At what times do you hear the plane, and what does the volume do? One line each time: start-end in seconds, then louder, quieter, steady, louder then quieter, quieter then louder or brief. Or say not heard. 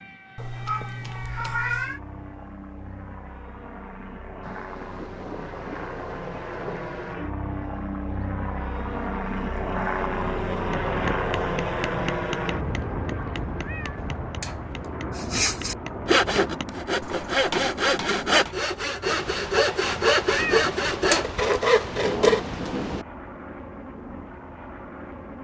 0.0-25.4 louder then quieter.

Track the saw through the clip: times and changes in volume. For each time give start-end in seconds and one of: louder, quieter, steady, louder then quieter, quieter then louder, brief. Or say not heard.
15.2-22.4 steady.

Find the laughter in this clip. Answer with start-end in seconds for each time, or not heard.
not heard.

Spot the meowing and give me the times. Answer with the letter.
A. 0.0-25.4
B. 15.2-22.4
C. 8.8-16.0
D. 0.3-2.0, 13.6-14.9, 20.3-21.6
D.